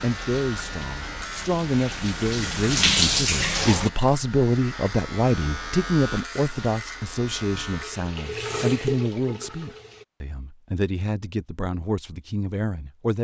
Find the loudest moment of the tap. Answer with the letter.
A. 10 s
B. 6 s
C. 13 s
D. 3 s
D.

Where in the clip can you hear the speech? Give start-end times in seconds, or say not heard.
0.0-13.1.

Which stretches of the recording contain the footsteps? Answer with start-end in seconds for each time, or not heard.
not heard.